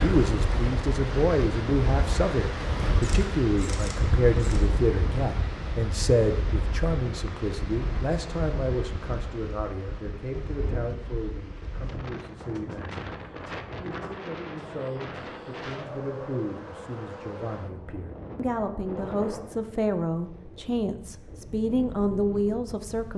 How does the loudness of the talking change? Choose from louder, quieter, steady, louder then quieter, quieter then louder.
quieter then louder.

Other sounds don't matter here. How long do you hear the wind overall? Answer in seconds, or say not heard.
23 s.